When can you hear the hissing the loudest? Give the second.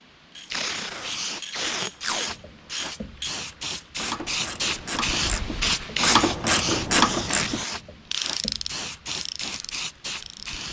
6 s.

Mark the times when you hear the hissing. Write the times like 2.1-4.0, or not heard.
0.0-10.6.